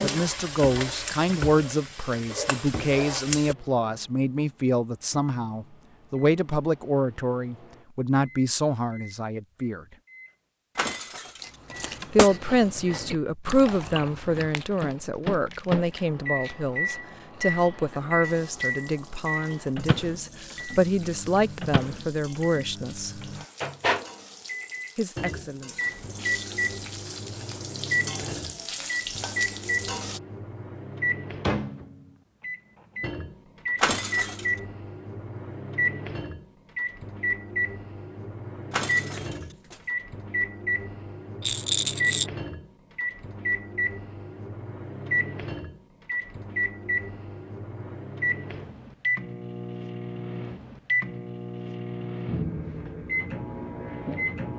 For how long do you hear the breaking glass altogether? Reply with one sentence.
The breaking glass can be heard for 3 seconds in total.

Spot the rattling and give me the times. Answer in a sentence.
The rattling can be heard from 41.4 to 42.3 s.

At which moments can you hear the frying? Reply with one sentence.
You can hear the frying from 0.0 to 3.5 s and from 18.2 to 30.2 s.